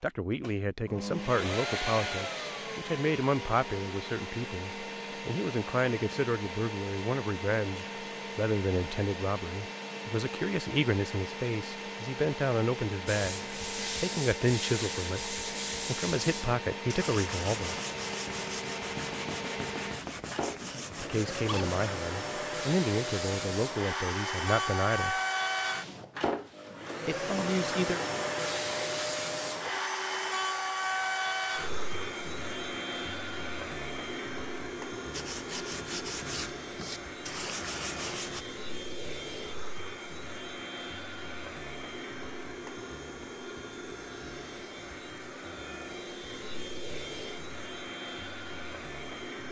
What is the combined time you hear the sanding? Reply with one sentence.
The sanding can be heard for 12 seconds in total.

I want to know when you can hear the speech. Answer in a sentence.
The speech can be heard from 0.0 to 17.8 s, from 20.9 to 25.2 s and from 27.1 to 28.0 s.